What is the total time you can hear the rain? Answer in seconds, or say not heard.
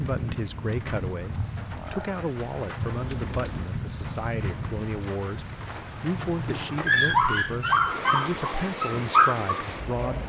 10 s.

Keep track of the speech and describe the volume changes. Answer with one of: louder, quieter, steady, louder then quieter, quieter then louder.
steady.